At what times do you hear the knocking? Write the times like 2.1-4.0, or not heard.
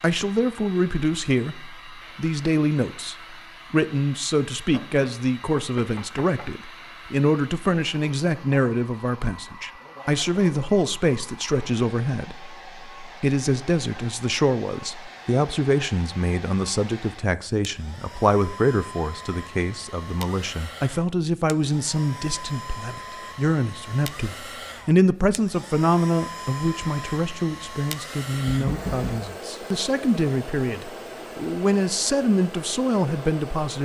4.7-6.5, 28.4-29.2.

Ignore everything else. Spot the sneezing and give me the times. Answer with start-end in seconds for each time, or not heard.
not heard.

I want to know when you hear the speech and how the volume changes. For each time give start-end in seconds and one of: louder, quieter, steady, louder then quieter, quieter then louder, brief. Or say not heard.
0.0-33.8 steady.